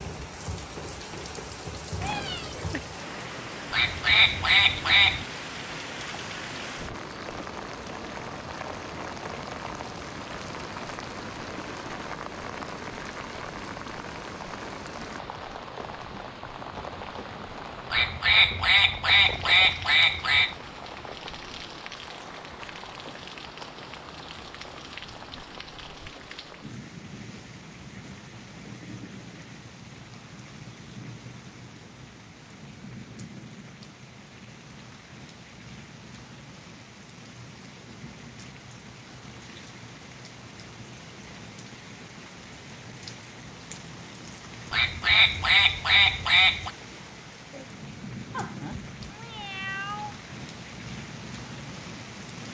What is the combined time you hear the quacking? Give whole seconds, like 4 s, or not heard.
6 s.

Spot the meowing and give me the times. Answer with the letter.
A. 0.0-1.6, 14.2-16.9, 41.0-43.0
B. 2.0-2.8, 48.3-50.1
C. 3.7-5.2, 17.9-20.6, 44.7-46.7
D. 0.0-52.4
B.